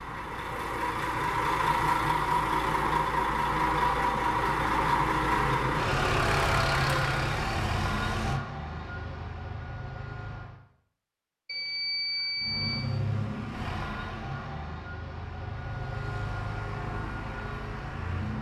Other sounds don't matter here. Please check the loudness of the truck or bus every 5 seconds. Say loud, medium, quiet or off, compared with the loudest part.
loud, loud, medium, medium.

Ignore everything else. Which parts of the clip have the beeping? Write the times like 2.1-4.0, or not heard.
11.4-12.8.